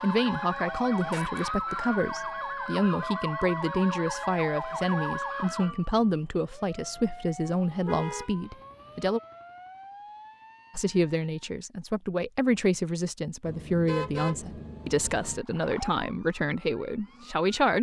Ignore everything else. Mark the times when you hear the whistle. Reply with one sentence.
You can't hear the whistle here.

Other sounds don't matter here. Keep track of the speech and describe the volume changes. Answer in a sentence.
The volume of the speech stays about the same.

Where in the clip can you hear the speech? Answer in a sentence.
The speech can be heard from 0.0 to 9.2 s and from 10.8 to 17.7 s.